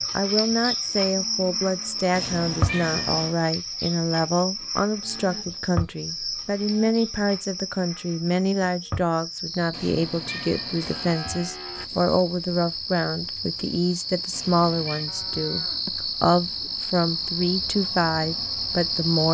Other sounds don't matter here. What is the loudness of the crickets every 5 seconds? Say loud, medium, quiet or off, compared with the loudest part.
loud, medium, medium, loud.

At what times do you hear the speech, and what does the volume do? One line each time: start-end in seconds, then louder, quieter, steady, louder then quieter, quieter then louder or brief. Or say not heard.
0.1-19.2 steady.